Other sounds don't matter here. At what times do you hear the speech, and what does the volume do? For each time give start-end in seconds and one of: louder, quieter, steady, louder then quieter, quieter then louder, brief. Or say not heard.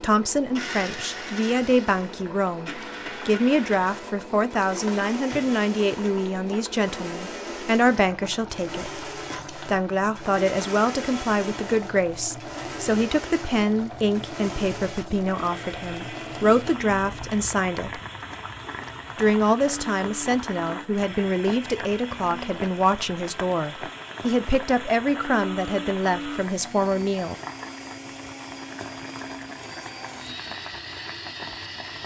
0.0-18.0 steady
19.1-27.4 steady.